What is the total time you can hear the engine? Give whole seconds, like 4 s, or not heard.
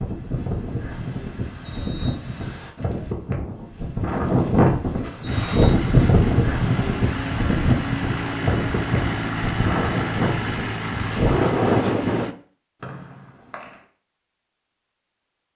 7 s.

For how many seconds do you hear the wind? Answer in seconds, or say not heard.
12 s.